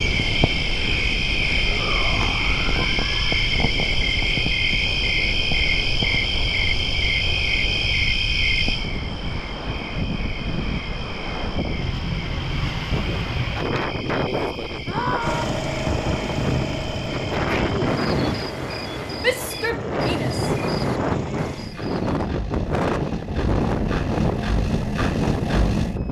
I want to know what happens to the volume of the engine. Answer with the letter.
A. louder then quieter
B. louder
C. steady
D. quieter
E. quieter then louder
E.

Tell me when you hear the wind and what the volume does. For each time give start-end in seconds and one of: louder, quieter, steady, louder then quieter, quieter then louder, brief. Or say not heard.
0.0-26.0 louder.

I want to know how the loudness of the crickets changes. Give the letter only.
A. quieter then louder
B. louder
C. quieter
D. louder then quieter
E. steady
C.